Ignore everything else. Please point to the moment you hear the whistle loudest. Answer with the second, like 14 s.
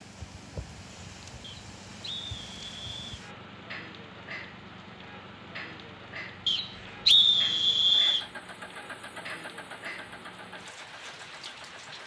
7 s.